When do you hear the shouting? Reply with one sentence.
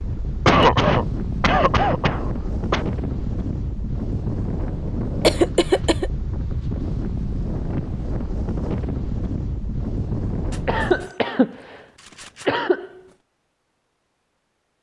The shouting can't be heard in this clip.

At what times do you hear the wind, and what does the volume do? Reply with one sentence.
The wind can be heard from 0.0 to 11.1 s, at a steady volume.